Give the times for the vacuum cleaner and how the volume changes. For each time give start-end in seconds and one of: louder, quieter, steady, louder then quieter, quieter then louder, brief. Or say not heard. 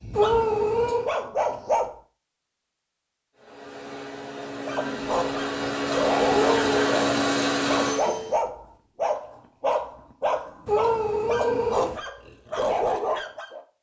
3.4-8.3 louder.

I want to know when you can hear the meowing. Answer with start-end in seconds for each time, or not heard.
0.1-1.1, 6.3-6.8, 10.7-12.0.